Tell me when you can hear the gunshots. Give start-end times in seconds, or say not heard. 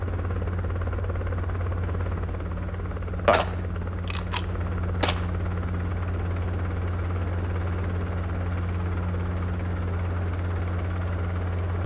3.3-5.2.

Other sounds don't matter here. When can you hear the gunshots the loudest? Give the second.
5 s.